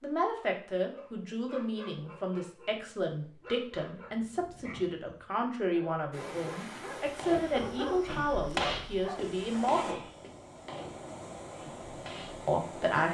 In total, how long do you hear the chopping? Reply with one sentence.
You can hear the chopping for 5 seconds altogether.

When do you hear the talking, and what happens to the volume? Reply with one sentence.
The talking can be heard from 0.0 to 10.1 s, at a steady volume; and briefly from 12.4 to 13.0 s.